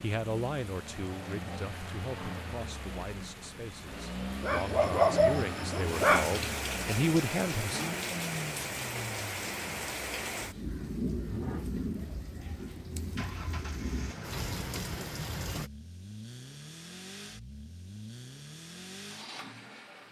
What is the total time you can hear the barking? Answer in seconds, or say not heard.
2 s.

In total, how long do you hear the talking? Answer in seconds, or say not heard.
8 s.